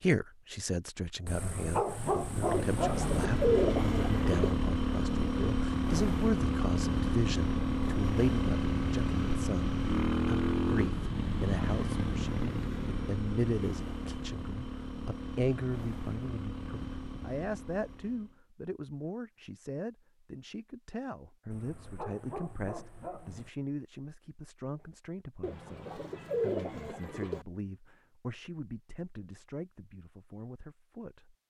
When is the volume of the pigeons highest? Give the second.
4 s.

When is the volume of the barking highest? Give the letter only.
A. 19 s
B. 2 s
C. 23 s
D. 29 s
B.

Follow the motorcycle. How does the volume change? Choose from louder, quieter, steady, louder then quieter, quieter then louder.
quieter.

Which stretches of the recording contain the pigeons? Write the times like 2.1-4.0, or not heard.
2.5-4.5, 25.4-27.4.